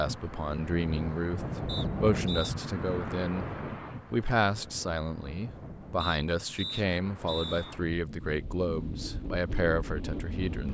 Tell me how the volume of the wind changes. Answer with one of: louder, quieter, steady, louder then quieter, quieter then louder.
quieter then louder.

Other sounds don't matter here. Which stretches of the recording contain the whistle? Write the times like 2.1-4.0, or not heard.
1.6-2.5, 6.0-7.8.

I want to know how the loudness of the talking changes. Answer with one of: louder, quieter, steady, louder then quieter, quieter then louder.
steady.